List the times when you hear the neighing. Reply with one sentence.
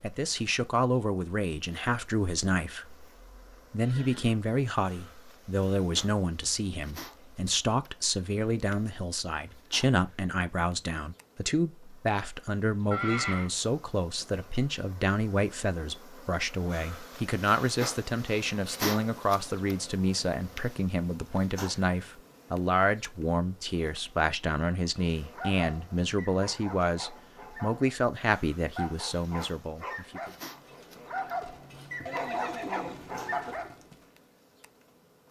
You can hear the neighing from 2.9 to 4.4 s, from 12.9 to 13.5 s and from 32.0 to 33.5 s.